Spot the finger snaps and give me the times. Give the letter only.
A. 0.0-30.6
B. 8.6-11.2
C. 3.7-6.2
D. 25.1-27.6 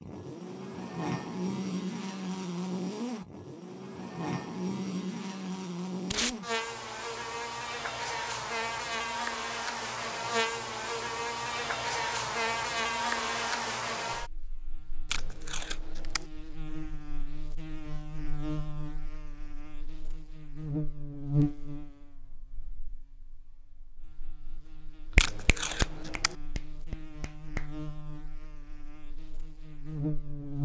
D.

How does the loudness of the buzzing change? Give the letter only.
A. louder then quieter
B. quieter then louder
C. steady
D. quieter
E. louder
D.